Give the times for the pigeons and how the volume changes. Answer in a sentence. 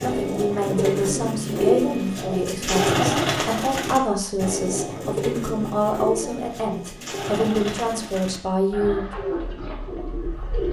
You can hear the pigeons from 0.0 to 10.6 s, getting quieter.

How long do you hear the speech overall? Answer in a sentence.
The speech can be heard for 9 seconds in total.